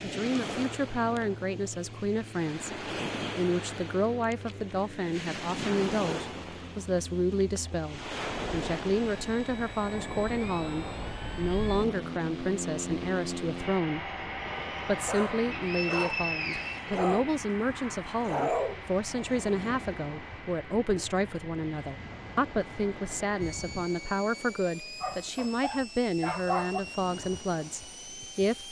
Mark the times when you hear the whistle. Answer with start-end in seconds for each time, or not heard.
15.5-16.9.